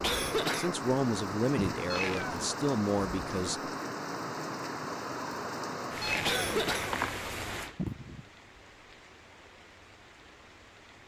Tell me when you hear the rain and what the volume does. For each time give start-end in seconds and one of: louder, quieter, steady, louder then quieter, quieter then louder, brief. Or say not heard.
0.0-11.0 quieter.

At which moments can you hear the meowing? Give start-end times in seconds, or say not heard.
1.9-2.5, 6.0-7.1.